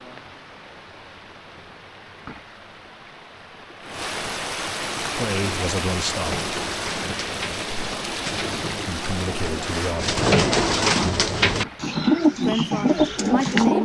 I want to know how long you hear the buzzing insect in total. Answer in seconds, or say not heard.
not heard.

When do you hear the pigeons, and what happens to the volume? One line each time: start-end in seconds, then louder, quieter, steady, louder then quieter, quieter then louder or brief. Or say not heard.
4.9-13.8 louder.